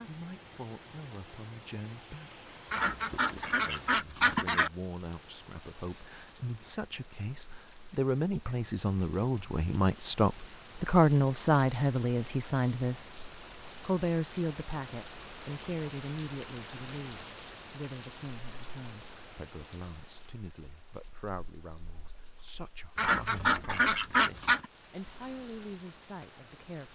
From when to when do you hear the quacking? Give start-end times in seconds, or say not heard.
2.7-4.7, 22.9-24.6.